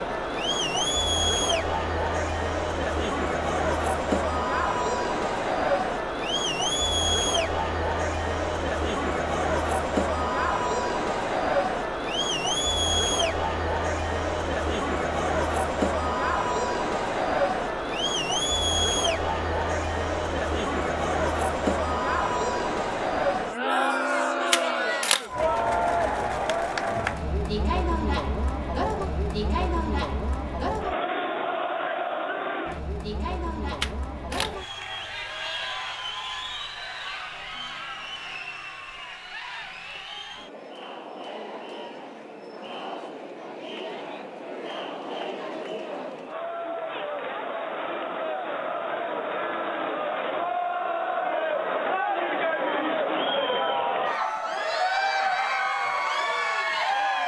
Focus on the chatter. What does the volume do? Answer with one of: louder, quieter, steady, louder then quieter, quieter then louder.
quieter then louder.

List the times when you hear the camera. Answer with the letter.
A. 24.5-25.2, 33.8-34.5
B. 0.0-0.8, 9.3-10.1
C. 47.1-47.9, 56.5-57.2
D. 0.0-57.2
A.